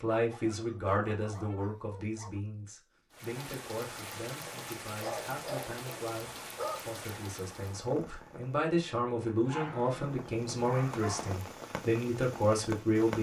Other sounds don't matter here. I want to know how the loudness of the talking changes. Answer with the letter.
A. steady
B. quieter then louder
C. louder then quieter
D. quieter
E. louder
B.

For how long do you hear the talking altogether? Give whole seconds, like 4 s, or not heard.
13 s.